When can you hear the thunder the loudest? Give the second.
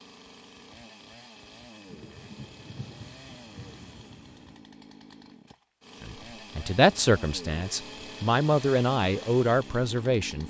3 s.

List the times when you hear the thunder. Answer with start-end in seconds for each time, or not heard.
1.9-4.7.